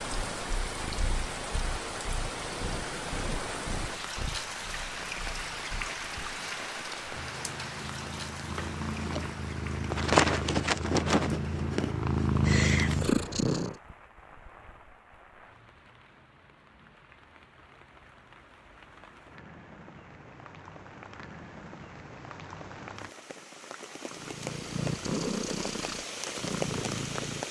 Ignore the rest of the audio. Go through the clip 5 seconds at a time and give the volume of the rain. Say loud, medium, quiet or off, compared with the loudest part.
loud, loud, quiet, quiet, medium, loud.